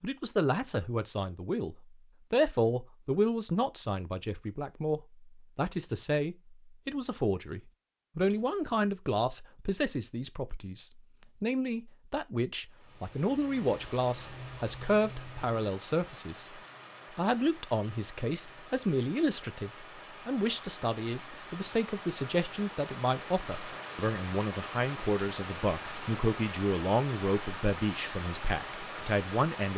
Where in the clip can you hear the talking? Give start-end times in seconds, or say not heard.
0.0-16.4, 17.1-29.7.